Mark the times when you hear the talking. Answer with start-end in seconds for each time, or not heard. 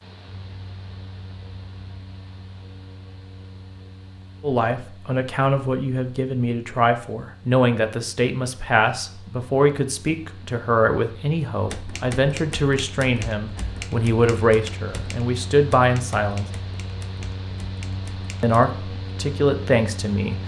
4.4-16.4, 18.4-20.4.